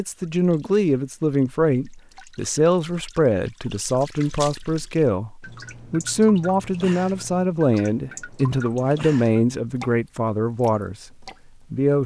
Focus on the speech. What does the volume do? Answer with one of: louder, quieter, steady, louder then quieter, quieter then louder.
steady.